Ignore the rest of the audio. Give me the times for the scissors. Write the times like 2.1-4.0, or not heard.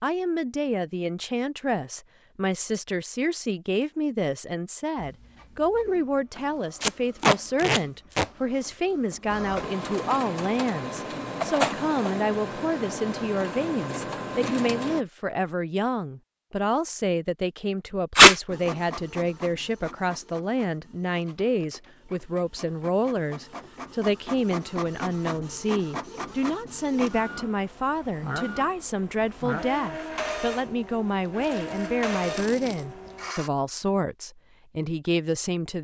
not heard.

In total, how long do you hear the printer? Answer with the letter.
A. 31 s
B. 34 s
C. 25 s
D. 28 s
C.